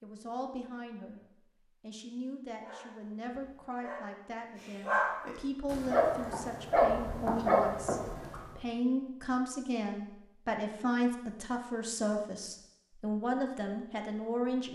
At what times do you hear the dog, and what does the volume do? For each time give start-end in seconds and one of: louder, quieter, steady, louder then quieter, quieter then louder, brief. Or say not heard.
2.6-8.4 louder.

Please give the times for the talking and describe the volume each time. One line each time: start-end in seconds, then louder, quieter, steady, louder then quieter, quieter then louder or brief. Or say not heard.
0.0-1.2 brief
1.8-14.7 louder.